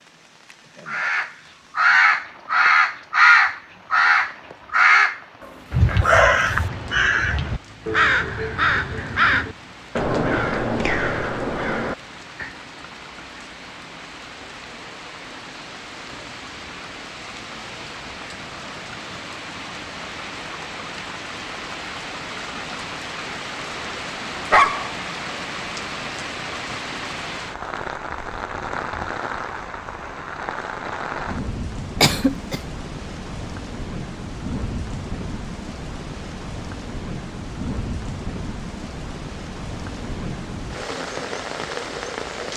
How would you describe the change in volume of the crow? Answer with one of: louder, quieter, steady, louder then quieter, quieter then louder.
quieter.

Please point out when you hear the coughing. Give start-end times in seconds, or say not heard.
32.0-32.6.